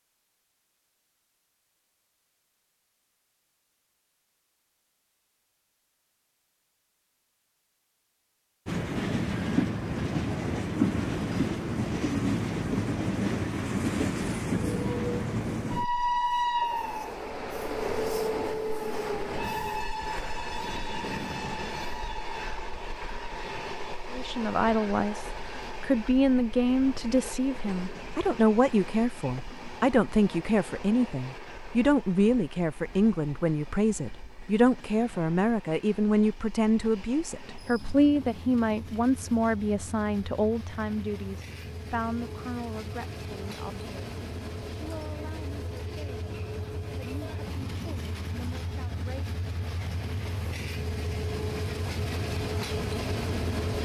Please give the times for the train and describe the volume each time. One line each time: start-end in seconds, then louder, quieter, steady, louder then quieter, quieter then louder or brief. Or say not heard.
8.7-53.7 quieter then louder.